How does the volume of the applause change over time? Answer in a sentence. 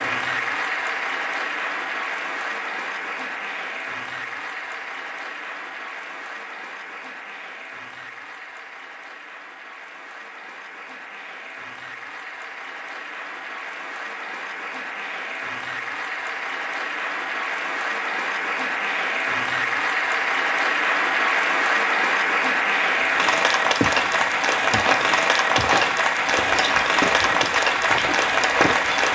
The volume of the applause goes down, then up.